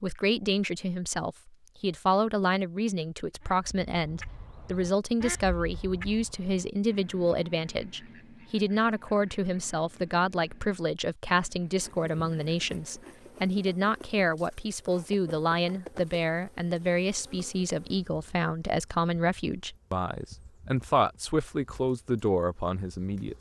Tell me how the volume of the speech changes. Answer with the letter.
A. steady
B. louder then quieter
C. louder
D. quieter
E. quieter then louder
A.